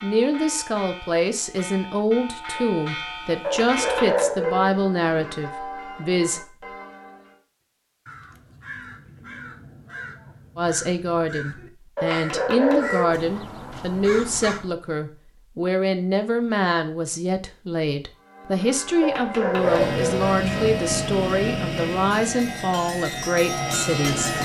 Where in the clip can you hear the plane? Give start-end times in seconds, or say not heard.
19.5-24.4.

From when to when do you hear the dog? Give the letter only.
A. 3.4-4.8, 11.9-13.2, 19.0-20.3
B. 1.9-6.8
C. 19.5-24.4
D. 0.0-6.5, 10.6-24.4
A.